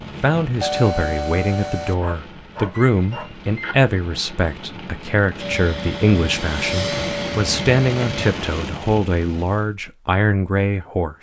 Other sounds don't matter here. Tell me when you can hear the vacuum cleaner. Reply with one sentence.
The vacuum cleaner can be heard from 5.3 to 8.3 s.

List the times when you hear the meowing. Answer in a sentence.
You can't hear the meowing here.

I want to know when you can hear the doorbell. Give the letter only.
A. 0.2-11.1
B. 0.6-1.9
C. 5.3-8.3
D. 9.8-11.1
B.